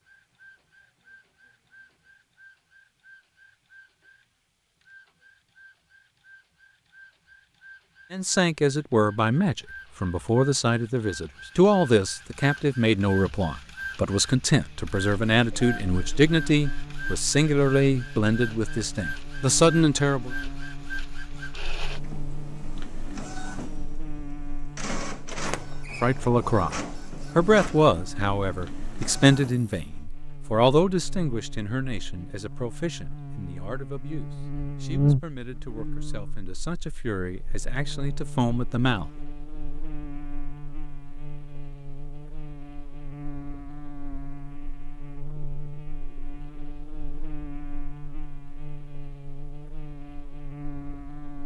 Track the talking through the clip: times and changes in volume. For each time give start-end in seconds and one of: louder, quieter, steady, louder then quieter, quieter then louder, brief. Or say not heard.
8.1-20.4 steady
26.0-39.1 quieter then louder.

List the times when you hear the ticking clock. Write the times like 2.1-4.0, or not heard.
not heard.